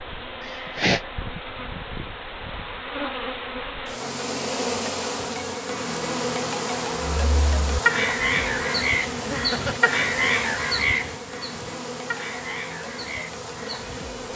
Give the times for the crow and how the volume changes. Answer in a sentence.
You can hear the crow from 7.0 to 14.1 s, getting quieter.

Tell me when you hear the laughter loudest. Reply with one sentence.
The loudest moment of the laughter is at 1 second.